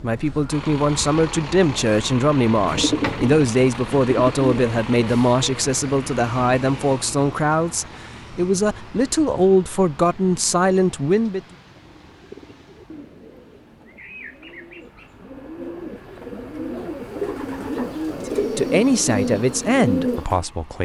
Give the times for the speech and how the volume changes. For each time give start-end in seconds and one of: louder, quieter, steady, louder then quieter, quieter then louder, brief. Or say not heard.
0.0-11.4 steady
18.1-20.7 brief.